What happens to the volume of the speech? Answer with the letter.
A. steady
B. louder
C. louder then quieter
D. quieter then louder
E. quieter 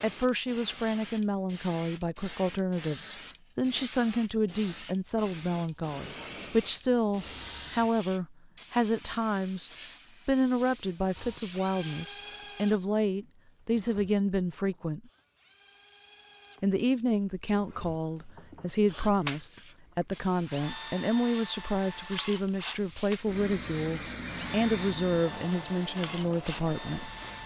A.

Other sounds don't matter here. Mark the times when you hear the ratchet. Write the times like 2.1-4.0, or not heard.
not heard.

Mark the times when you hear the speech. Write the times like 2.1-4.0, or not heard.
0.0-15.0, 16.6-27.1.